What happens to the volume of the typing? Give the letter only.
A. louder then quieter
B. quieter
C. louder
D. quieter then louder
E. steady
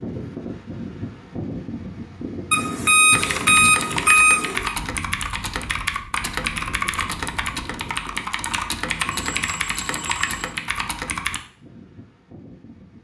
E.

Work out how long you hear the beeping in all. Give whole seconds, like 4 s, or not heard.
4 s.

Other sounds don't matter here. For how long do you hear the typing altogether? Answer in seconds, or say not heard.
8 s.